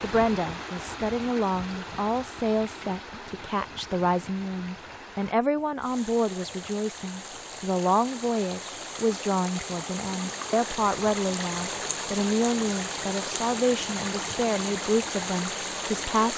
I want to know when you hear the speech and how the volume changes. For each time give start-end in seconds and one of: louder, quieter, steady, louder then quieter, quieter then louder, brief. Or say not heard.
0.0-16.3 steady.